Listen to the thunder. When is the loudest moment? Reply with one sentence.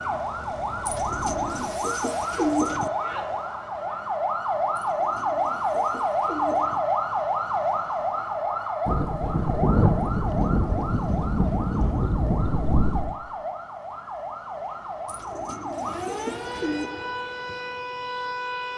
The loudest moment of the thunder is at 10 seconds.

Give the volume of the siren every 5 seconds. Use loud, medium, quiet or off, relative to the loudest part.
loud, loud, medium, medium.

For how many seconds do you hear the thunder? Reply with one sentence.
You can hear the thunder for 4 seconds altogether.